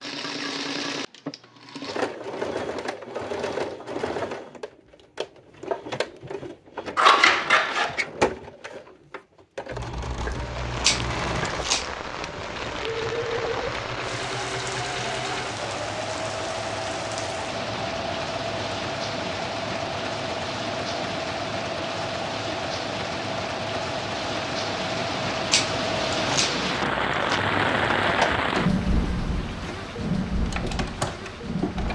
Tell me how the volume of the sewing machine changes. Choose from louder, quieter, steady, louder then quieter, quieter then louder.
steady.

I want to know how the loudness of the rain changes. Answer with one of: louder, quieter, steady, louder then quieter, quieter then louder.
louder.